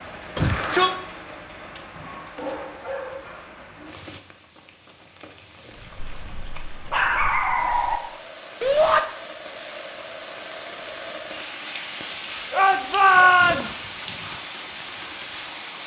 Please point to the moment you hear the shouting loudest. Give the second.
13 s.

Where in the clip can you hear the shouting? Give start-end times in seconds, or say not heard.
0.3-1.0, 8.6-9.0, 12.6-13.9.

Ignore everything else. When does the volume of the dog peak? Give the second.
7 s.